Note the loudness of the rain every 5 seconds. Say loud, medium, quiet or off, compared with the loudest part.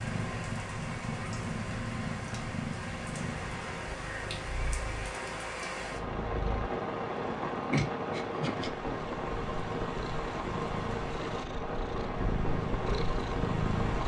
medium, loud, loud.